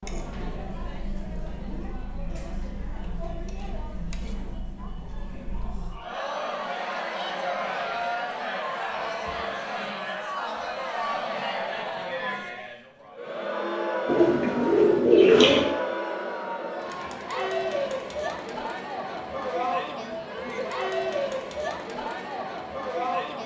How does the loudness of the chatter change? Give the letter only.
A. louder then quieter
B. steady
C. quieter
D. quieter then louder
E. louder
E.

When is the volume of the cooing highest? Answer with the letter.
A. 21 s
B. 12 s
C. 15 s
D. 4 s
C.